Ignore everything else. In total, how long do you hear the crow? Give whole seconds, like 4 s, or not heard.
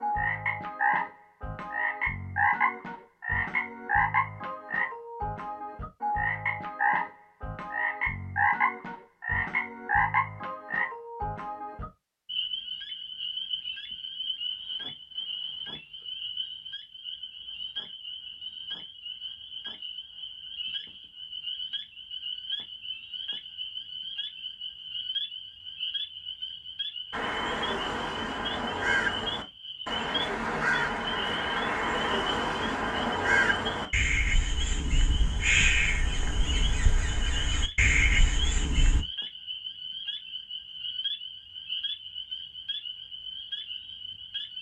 12 s.